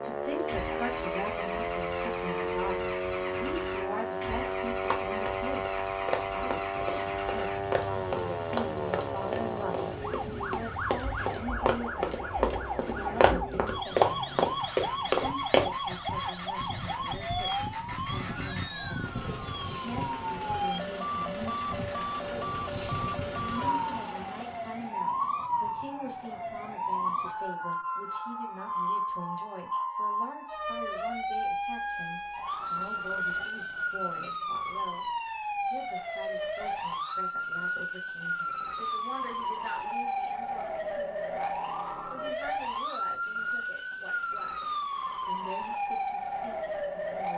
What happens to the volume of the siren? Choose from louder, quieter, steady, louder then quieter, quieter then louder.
steady.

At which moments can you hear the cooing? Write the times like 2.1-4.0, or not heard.
not heard.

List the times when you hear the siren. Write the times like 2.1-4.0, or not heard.
0.0-47.3.